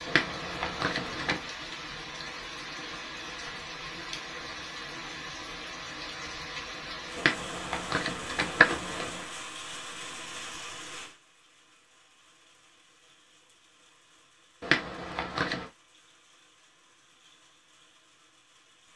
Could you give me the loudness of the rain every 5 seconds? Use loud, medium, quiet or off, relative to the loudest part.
loud, loud, medium, quiet.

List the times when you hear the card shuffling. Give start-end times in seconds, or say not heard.
0.1-1.4, 7.2-9.2, 14.6-15.7.